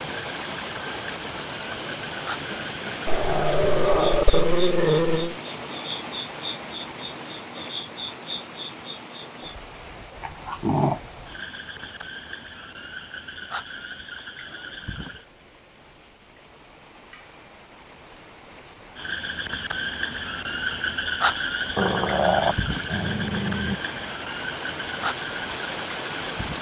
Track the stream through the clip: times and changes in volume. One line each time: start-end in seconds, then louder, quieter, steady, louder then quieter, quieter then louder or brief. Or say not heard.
0.0-26.5 quieter then louder.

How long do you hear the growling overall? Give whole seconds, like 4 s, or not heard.
5 s.